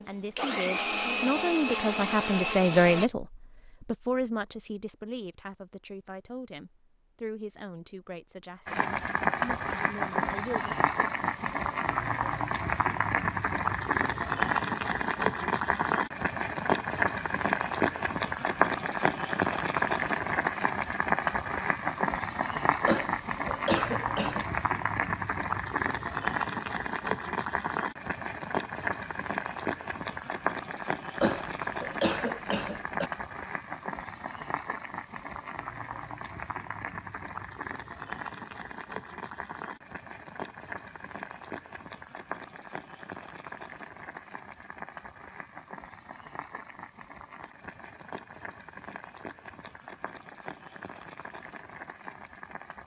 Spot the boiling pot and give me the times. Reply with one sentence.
The boiling pot can be heard from 8.7 to 52.8 s.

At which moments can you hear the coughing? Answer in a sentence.
You can hear the coughing from 22.9 to 24.4 s and from 31.2 to 33.1 s.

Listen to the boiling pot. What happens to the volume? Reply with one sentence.
The loudness of the boiling pot goes down.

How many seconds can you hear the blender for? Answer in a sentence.
You can hear the blender for 3 seconds altogether.